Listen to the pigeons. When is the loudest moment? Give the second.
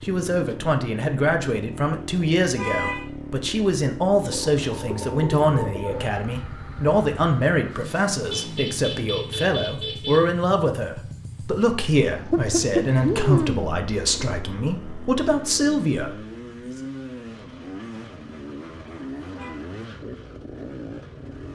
13 s.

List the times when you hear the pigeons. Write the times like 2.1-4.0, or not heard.
4.2-6.1, 12.3-14.2.